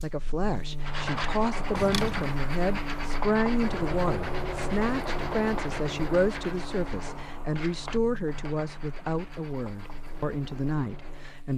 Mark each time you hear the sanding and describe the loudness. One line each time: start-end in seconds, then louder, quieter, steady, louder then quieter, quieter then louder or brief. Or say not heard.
0.8-11.4 quieter.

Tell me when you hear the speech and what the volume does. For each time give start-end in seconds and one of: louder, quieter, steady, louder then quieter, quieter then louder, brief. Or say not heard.
0.0-11.5 steady.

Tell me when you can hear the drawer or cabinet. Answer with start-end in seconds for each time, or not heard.
1.8-2.4.